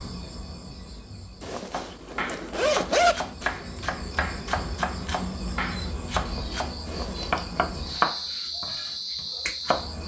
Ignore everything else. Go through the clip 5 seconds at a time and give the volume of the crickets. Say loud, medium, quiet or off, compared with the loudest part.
medium, loud.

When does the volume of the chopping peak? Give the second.
8 s.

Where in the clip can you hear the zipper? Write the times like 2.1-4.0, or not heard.
1.4-3.1, 6.8-7.8.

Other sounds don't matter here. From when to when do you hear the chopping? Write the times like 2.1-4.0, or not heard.
1.7-9.9.